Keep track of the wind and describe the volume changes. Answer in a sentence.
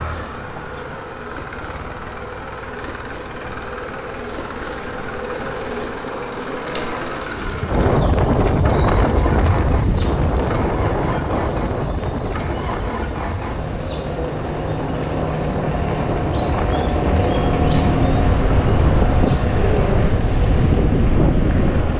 The loudness of the wind goes down, then up.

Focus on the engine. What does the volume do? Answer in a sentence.
The loudness of the engine goes up.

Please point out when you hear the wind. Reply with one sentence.
The wind can be heard from 7.7 to 21.9 s.